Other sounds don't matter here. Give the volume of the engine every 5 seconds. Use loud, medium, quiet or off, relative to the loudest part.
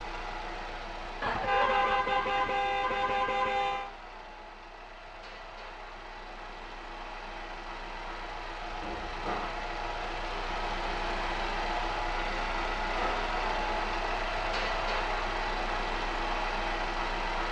medium, medium, loud, loud.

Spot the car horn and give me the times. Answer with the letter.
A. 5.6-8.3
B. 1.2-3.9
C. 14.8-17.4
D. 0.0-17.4
B.